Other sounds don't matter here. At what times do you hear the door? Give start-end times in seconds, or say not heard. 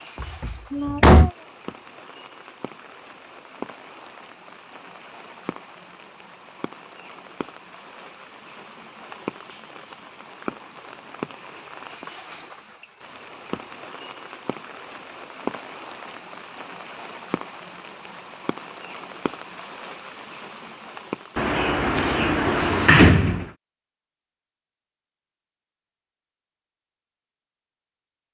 0.2-1.3, 21.4-23.4.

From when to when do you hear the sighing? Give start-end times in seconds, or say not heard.
0.7-1.4.